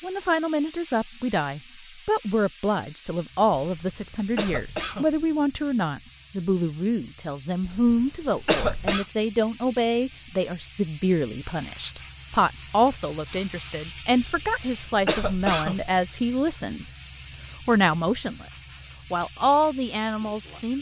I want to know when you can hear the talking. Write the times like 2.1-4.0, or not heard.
0.0-16.9, 17.6-20.7.